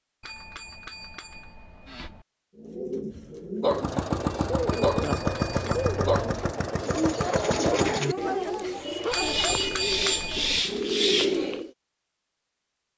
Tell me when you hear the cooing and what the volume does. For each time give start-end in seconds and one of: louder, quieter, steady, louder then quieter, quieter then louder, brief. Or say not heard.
2.5-11.7 louder.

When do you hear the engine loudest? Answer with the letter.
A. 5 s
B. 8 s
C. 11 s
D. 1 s
A.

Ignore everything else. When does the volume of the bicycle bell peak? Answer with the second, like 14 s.
10 s.